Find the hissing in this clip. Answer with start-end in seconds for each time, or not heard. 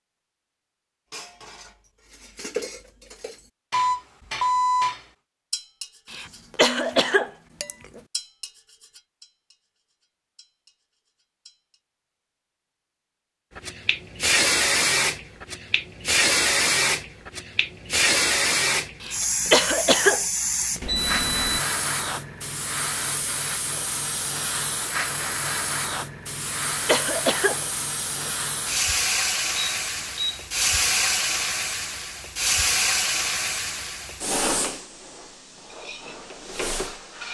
13.6-37.2.